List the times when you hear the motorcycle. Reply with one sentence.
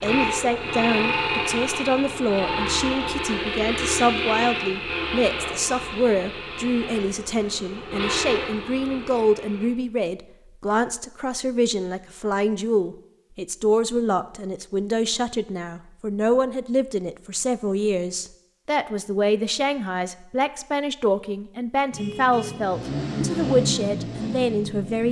You can hear the motorcycle from 0.0 to 9.7 s and from 21.9 to 25.0 s.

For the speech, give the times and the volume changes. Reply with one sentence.
The speech can be heard from 0.0 to 25.0 s, at a steady volume.